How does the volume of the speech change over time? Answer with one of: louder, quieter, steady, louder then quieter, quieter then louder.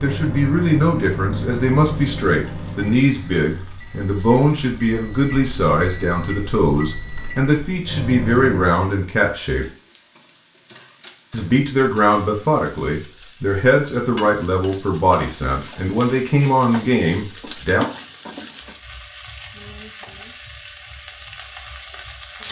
steady.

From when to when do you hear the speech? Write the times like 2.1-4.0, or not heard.
0.0-9.7, 11.3-17.9.